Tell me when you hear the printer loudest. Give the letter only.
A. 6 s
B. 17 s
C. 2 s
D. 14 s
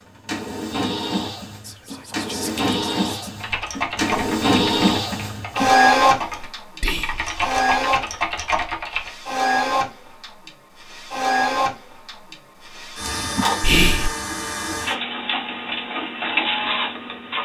A.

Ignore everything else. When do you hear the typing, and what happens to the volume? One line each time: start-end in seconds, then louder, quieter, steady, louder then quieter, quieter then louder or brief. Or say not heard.
3.4-9.1 quieter then louder.